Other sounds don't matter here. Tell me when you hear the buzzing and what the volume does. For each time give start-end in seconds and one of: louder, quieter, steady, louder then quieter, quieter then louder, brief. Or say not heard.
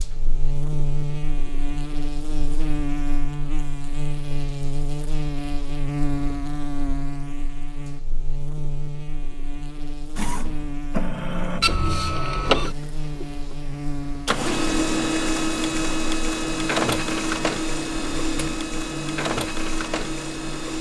0.0-20.7 quieter.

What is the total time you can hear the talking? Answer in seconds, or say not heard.
not heard.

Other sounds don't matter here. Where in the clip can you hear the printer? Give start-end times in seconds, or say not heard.
10.2-20.7.